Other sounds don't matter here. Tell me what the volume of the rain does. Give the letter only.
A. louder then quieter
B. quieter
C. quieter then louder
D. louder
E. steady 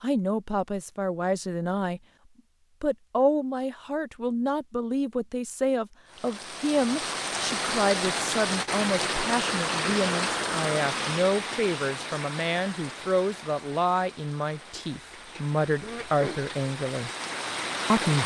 C.